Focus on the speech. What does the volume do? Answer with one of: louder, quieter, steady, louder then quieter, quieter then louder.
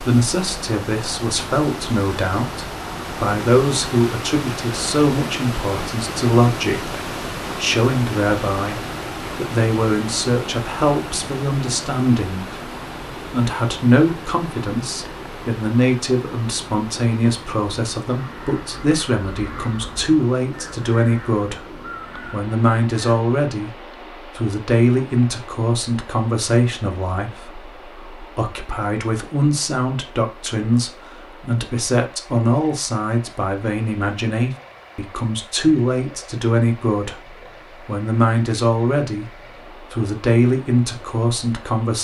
steady.